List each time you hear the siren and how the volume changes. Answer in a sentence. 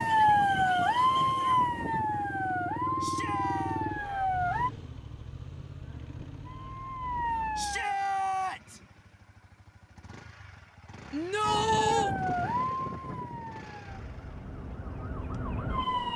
The siren can be heard from 0.0 to 4.7 s, getting quieter; briefly from 6.4 to 8.2 s; and from 11.4 to 16.1 s, getting quieter then louder.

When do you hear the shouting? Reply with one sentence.
You can hear the shouting from 3.0 to 3.9 s, from 7.5 to 8.8 s and from 11.1 to 12.2 s.